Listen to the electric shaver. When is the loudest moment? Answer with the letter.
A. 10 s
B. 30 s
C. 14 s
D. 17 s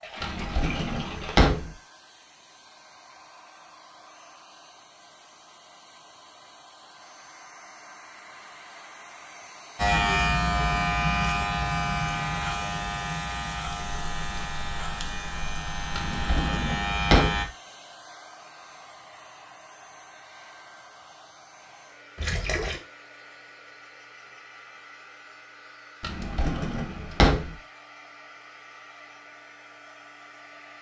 A.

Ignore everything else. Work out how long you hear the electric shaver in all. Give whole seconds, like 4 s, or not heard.
8 s.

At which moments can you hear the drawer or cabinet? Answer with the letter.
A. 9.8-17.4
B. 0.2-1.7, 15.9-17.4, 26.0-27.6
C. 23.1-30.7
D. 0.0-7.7
B.